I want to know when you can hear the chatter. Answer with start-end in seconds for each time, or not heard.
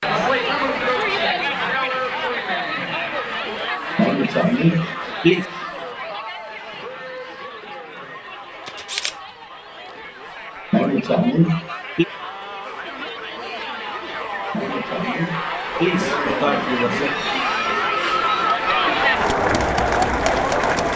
0.0-20.9.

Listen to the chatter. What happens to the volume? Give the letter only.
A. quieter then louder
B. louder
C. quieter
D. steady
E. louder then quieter
A.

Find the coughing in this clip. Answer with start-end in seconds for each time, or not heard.
4.0-5.5, 10.7-12.1, 14.5-17.1.